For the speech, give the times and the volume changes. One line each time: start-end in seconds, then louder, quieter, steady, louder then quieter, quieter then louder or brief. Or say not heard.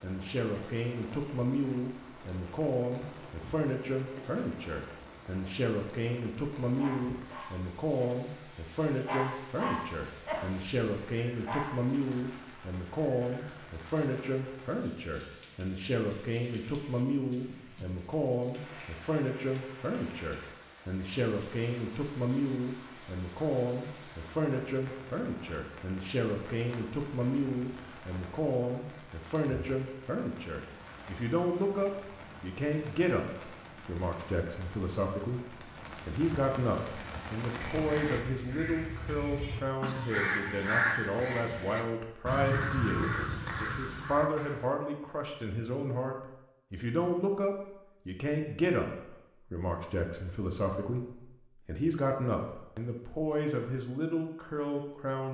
0.0-55.3 steady.